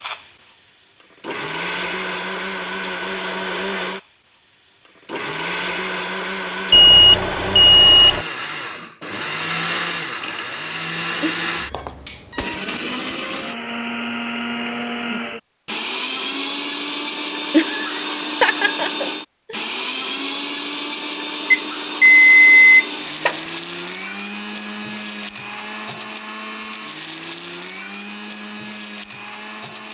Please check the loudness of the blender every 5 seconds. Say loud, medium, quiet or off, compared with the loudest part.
loud, loud, loud, loud, loud, medium.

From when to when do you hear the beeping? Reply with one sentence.
You can hear the beeping from 6.7 to 8.2 s, from 11.7 to 12.9 s and from 21.5 to 23.4 s.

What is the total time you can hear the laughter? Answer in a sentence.
The laughter can be heard for 3 seconds in total.